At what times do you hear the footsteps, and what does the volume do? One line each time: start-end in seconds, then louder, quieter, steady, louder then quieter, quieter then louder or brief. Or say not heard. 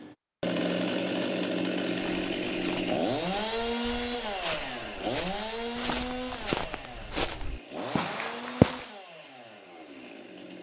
1.9-8.8 louder.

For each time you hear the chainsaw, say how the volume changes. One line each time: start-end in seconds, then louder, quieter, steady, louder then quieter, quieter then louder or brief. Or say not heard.
0.0-10.5 quieter.